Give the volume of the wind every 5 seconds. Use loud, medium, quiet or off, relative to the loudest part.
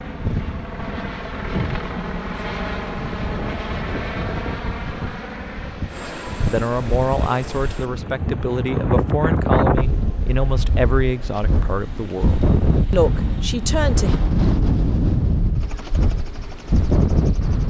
medium, loud, loud, loud.